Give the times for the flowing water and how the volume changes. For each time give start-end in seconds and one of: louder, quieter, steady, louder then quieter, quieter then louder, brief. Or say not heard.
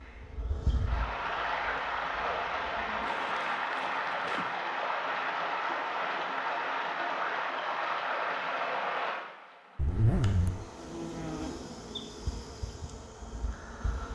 0.0-14.1 quieter.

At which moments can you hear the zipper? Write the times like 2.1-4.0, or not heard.
3.0-4.5, 9.8-10.7.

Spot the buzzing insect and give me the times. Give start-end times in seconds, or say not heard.
0.0-3.1, 10.2-14.1.